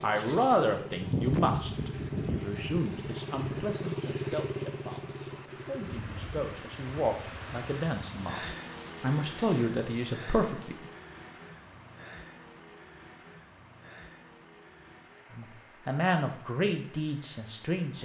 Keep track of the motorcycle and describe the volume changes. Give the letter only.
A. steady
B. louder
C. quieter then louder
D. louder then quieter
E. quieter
E.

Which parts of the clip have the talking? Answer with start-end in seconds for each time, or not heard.
0.0-10.9, 15.3-18.0.